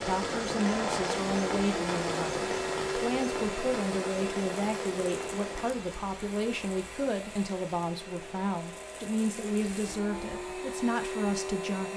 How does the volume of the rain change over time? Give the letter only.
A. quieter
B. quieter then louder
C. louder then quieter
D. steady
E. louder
A.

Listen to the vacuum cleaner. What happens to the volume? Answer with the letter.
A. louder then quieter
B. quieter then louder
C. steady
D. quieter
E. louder
B.